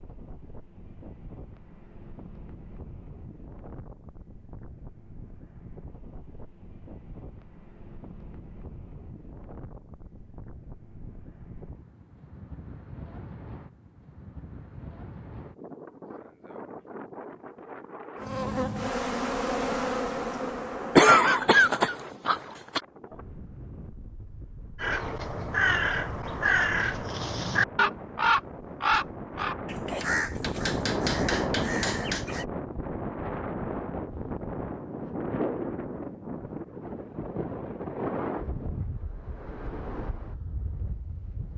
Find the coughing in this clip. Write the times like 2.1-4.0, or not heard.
20.9-22.8.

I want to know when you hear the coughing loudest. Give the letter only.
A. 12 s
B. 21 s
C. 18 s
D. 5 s
B.